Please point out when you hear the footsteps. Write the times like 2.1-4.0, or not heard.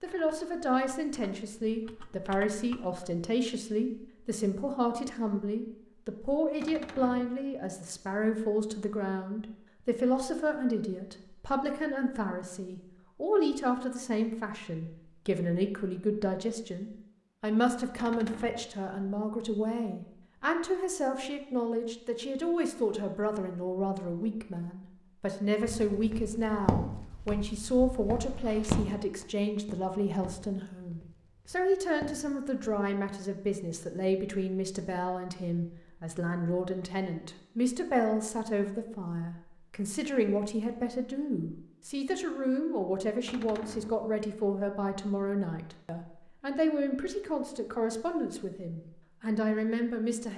25.6-32.9.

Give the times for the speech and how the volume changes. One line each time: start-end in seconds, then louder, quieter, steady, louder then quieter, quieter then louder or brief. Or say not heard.
0.0-50.3 steady.